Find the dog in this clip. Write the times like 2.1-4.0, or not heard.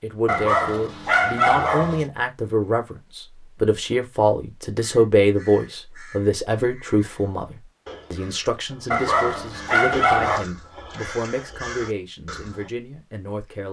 0.2-2.0, 8.9-10.4.